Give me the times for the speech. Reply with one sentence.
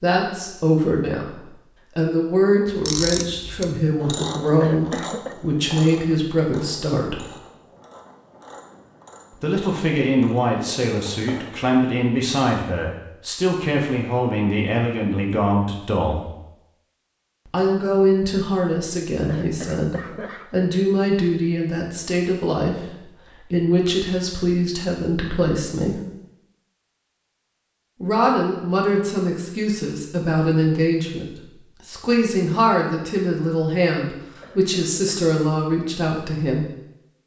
The speech can be heard from 0.0 to 7.2 s, from 9.4 to 16.3 s, from 17.4 to 26.0 s and from 28.0 to 36.6 s.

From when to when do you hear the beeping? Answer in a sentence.
The beeping can't be heard in this clip.